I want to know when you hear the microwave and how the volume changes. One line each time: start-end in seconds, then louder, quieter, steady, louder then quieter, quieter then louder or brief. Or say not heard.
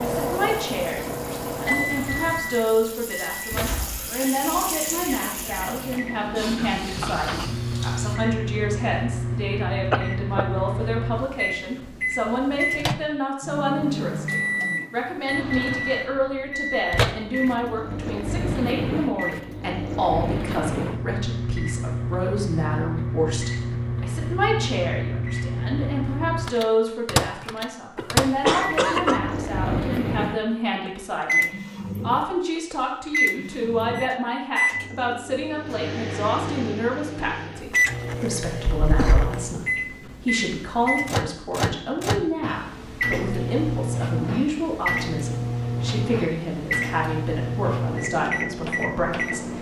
0.0-49.5 steady.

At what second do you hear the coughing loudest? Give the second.
29 s.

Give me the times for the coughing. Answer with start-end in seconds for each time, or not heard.
9.9-10.4, 27.9-29.2, 38.9-39.3.